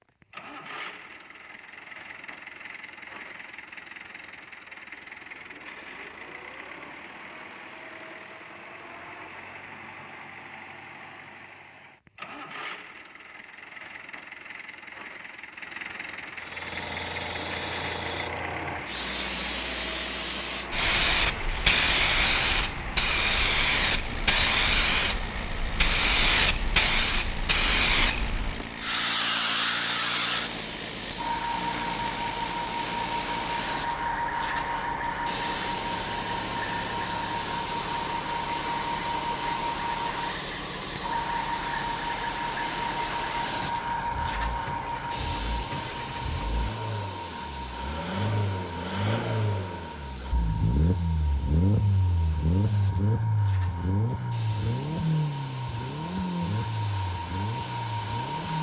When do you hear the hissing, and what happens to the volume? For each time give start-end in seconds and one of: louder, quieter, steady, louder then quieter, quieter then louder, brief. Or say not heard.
16.4-58.5 quieter.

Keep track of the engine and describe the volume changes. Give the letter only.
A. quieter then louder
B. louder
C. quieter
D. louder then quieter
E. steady
B.